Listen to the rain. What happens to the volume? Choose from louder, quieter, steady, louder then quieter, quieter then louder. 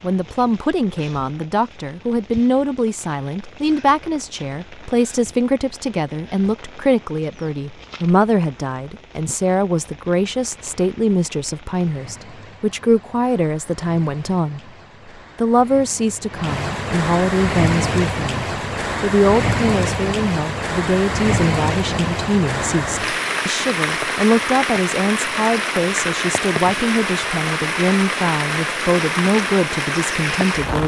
louder.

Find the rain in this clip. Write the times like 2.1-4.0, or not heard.
0.0-30.8.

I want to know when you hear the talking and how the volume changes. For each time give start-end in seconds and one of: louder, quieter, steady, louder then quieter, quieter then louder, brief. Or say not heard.
0.0-14.6 steady
15.3-30.8 steady.